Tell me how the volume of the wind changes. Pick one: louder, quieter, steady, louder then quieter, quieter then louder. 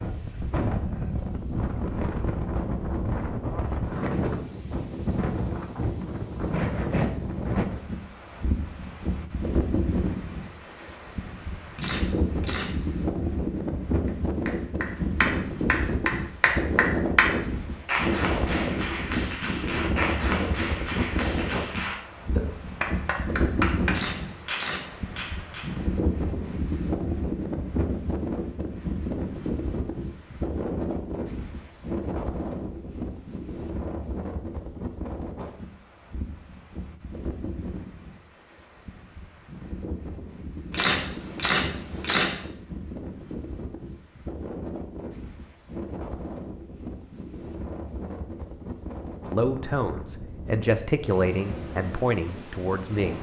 quieter.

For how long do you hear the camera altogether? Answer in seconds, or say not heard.
4 s.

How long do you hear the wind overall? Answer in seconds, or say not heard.
53 s.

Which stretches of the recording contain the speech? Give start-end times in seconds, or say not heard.
49.3-53.1.